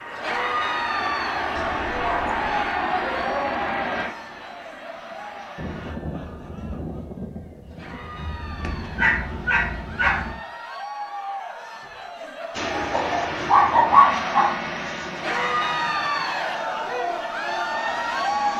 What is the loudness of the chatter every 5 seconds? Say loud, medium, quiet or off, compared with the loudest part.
medium, quiet, medium, loud.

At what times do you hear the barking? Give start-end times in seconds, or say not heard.
1.6-3.5, 8.6-10.3, 12.9-14.5.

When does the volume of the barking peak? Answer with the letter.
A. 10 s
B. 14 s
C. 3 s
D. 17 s
B.